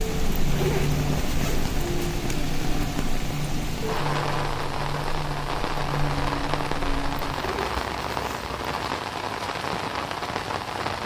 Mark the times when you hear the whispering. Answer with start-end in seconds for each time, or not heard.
not heard.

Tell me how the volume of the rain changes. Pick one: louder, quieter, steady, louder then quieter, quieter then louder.
steady.